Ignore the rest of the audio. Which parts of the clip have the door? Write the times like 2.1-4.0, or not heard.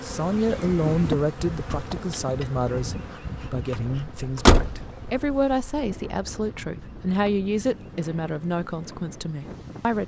4.5-5.8.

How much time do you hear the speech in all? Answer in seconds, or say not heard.
10 s.